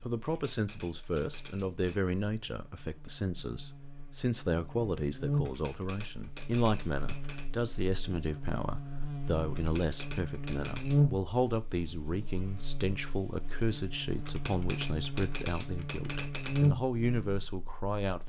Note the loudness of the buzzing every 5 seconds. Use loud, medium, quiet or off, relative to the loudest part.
quiet, medium, loud, loud.